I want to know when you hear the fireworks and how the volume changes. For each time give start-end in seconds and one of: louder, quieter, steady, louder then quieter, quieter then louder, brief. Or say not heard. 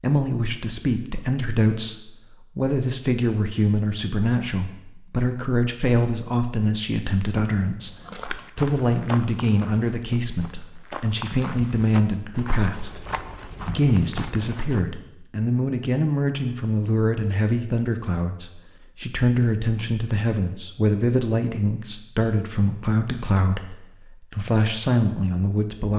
not heard.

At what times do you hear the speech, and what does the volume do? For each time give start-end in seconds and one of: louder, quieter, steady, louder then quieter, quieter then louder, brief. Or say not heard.
0.0-8.0 steady
8.6-13.1 quieter then louder
13.8-25.9 steady.